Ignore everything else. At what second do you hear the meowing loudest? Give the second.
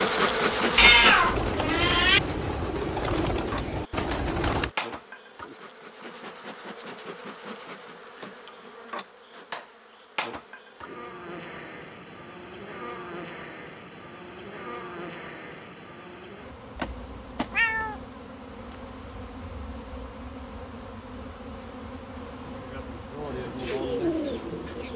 1 s.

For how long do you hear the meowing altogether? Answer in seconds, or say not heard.
3 s.